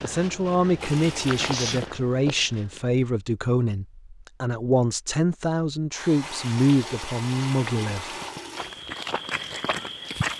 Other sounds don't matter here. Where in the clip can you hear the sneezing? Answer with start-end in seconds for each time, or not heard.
1.4-1.9.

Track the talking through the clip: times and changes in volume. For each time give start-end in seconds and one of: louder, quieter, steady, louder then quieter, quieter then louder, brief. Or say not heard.
0.0-8.4 steady.